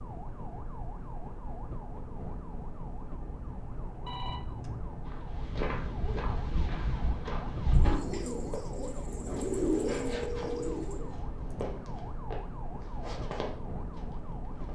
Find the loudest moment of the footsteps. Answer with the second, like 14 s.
8 s.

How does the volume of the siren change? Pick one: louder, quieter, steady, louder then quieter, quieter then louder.
steady.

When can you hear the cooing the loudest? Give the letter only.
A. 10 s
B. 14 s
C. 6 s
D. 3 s
A.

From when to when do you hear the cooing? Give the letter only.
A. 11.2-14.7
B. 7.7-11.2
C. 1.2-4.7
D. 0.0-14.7
B.